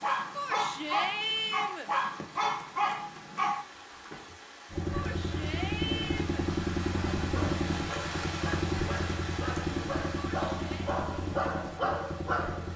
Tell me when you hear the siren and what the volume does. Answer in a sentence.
You can't hear the siren here.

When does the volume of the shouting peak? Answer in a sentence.
The loudest moment of the shouting is at 1 second.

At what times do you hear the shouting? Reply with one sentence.
You can hear the shouting from 0.3 to 1.9 s, from 4.9 to 6.5 s and from 10.2 to 10.9 s.